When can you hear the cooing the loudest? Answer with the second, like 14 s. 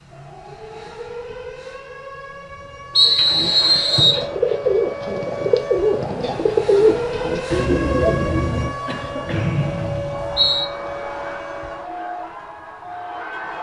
7 s.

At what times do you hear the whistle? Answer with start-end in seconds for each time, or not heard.
3.0-4.2, 9.3-10.7.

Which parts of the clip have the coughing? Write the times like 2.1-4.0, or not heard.
8.7-9.5.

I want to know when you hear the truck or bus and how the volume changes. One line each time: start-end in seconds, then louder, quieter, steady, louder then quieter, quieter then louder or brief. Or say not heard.
not heard.